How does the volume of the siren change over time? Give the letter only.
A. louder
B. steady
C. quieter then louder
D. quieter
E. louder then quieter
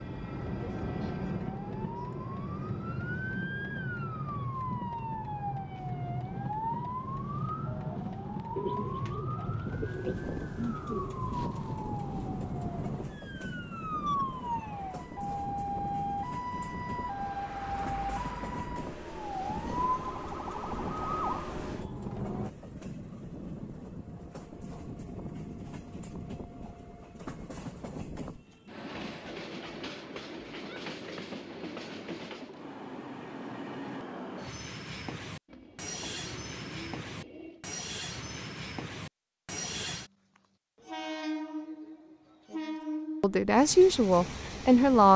B.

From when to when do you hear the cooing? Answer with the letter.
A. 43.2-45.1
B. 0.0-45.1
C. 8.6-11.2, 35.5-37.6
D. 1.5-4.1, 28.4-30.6
C.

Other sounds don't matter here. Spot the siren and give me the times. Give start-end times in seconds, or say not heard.
0.0-22.5.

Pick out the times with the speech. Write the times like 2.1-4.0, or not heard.
43.2-45.1.